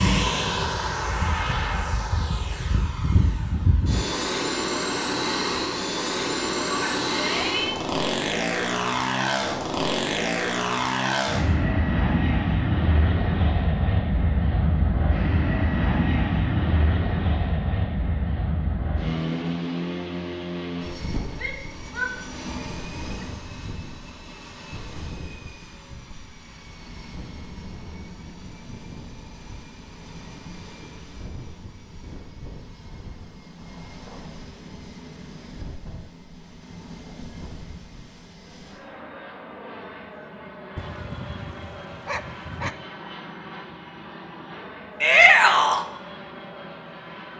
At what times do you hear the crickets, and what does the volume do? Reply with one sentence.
You can't hear the crickets here.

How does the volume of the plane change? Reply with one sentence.
The volume of the plane goes down.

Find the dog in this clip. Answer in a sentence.
The dog can be heard from 40.8 to 42.8 s.